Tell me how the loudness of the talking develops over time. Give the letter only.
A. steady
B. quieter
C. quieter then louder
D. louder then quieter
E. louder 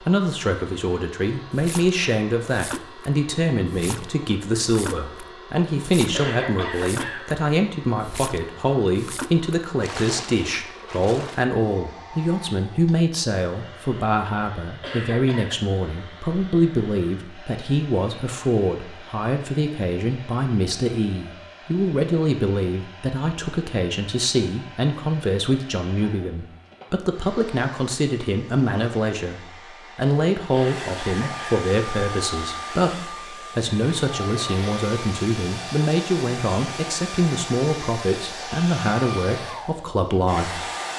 A.